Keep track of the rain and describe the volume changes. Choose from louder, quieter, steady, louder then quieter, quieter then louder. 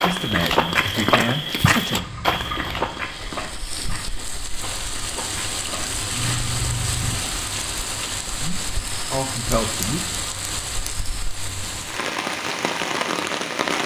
louder.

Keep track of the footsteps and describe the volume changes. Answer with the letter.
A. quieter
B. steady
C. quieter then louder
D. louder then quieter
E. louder
A.